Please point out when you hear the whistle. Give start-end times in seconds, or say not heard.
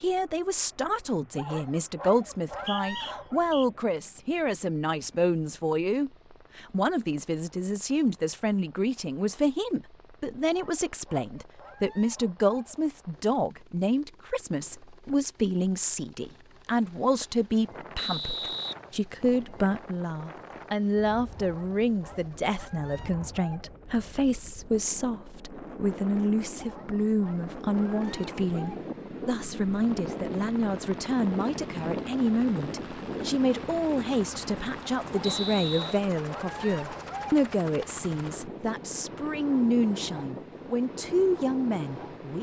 2.5-3.6, 17.9-19.4, 35.2-36.0.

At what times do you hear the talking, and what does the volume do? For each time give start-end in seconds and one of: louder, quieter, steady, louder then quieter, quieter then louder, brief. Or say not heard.
0.0-42.3 steady.